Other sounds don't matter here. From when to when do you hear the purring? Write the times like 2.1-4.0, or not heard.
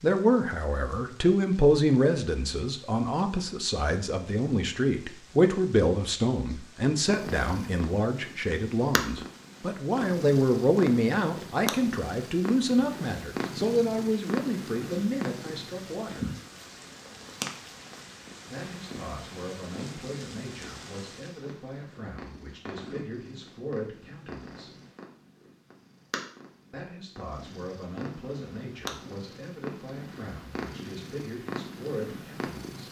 7.0-32.8.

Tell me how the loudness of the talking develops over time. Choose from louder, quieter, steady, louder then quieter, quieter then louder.
quieter.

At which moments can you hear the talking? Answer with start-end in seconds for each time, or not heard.
0.0-16.3, 18.5-24.7, 26.7-32.8.